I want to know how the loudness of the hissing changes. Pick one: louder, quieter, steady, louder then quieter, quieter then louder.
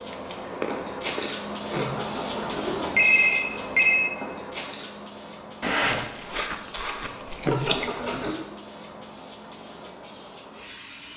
quieter.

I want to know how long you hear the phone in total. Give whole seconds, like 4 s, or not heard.
3 s.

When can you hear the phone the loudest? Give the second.
3 s.